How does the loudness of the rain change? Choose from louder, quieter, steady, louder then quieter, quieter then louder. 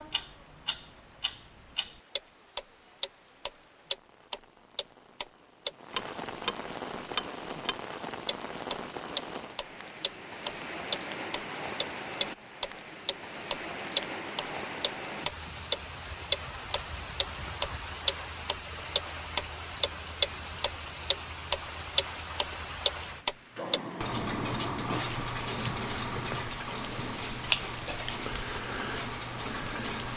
louder.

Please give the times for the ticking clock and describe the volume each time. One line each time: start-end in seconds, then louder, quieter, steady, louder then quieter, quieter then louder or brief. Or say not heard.
0.0-30.1 louder then quieter.